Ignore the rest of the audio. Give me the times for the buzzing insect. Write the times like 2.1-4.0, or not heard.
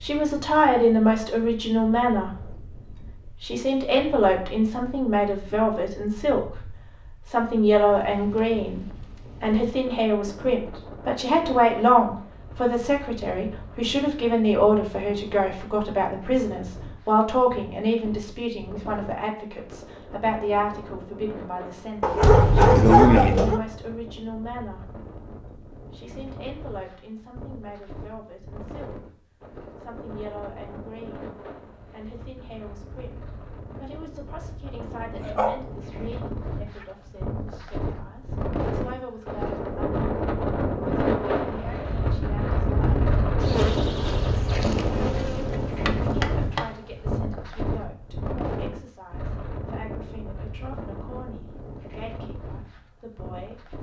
43.4-47.0.